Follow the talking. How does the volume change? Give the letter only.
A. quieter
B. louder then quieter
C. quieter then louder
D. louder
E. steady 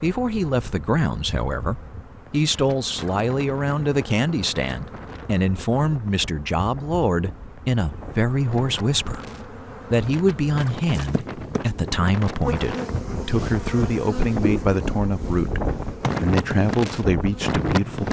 E.